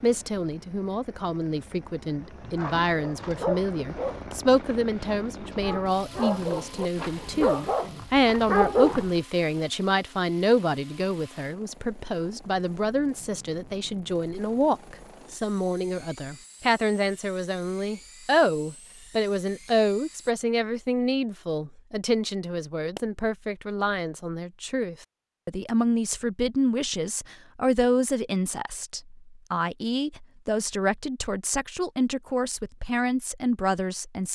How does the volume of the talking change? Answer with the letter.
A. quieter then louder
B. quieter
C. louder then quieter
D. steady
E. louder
D.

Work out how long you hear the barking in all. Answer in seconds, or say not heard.
7 s.